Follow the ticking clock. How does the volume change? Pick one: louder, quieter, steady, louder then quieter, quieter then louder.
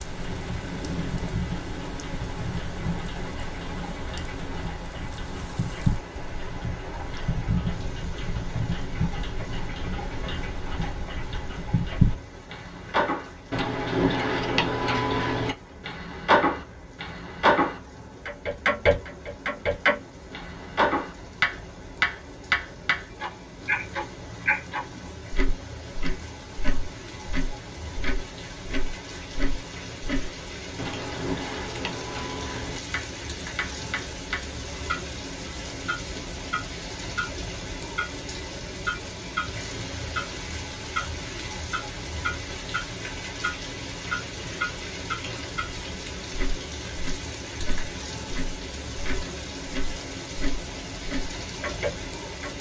louder then quieter.